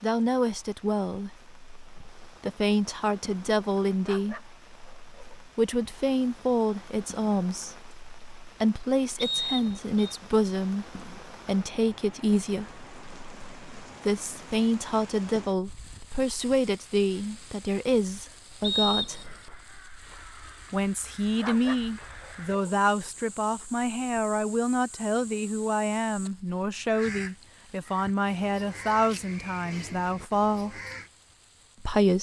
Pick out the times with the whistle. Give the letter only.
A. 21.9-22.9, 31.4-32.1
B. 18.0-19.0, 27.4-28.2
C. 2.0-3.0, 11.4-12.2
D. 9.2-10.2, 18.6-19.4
D.